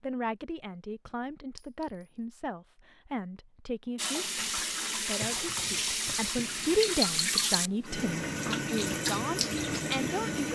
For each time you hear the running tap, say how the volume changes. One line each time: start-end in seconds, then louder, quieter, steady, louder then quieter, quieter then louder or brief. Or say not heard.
4.0-10.5 steady.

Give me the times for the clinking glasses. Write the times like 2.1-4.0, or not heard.
1.6-2.0, 6.3-7.5.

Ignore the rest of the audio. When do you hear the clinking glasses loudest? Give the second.
7 s.